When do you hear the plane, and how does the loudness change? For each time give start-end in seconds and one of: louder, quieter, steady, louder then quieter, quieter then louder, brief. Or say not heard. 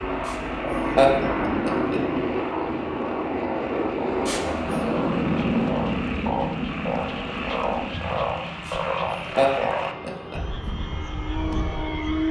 0.0-12.2 quieter.